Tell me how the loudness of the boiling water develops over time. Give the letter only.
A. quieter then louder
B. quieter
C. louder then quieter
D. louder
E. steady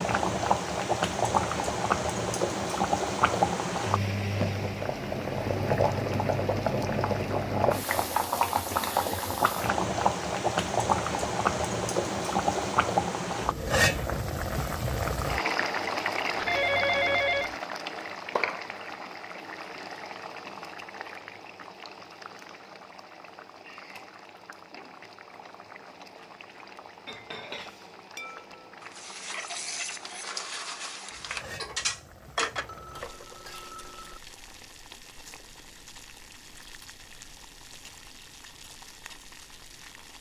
B.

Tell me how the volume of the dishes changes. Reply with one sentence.
The loudness of the dishes goes up.